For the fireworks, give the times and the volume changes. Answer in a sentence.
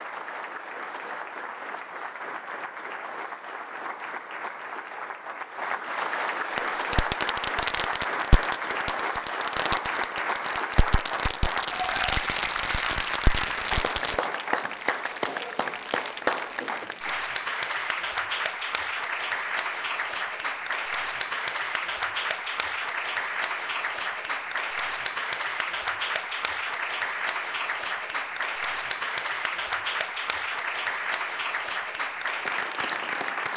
You can hear the fireworks from 6.5 to 14.2 s, at a steady volume.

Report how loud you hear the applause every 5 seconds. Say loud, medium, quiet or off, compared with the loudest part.
medium, loud, loud, loud, loud, loud, loud.